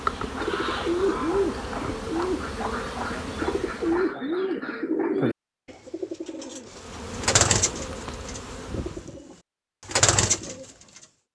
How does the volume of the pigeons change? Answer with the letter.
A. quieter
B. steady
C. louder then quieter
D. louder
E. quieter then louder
B.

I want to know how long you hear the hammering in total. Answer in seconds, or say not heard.
not heard.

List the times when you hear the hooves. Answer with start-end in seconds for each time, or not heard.
not heard.